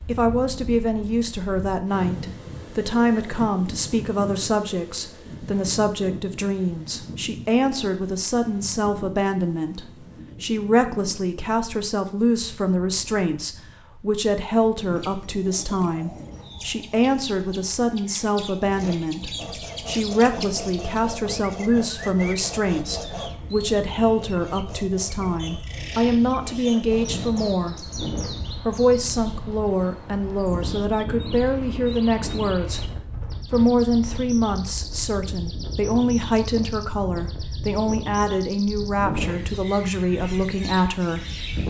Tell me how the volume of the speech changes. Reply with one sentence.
The volume of the speech stays about the same.